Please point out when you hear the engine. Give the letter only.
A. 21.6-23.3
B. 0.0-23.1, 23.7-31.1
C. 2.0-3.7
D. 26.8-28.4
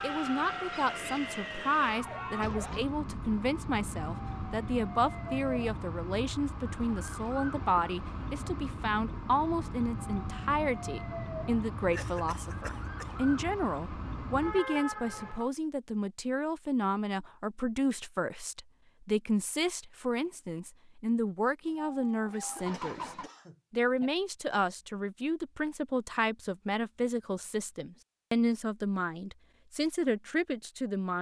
A.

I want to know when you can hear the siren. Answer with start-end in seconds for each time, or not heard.
0.0-15.5.